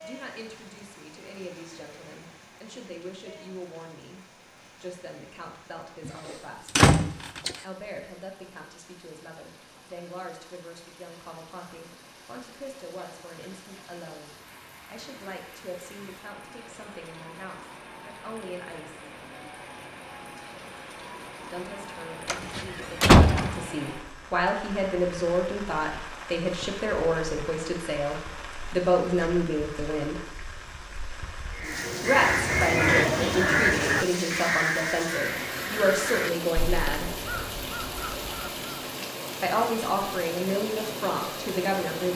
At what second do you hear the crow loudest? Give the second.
33 s.